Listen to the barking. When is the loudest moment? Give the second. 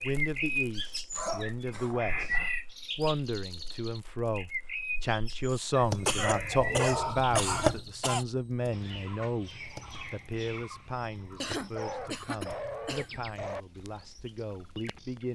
7 s.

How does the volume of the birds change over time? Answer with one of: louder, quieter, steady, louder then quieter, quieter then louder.
quieter.